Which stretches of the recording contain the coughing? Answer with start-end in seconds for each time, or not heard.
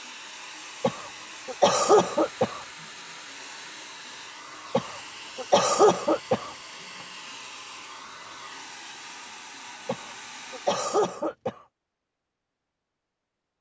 0.8-2.6, 4.7-6.5, 9.8-11.6.